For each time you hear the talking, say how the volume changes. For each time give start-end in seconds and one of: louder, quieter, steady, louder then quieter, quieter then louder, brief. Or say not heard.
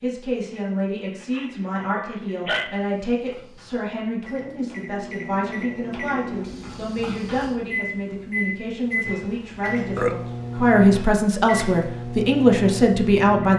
0.0-13.5 louder.